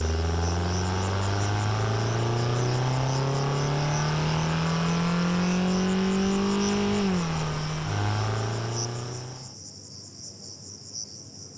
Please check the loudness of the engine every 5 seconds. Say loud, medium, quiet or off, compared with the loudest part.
loud, loud, off.